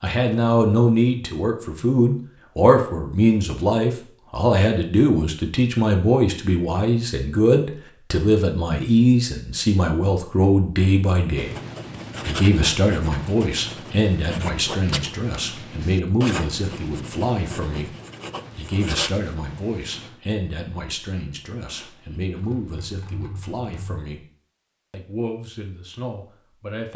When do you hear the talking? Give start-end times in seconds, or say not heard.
0.0-11.6, 12.2-17.9, 18.6-24.2, 24.9-26.9.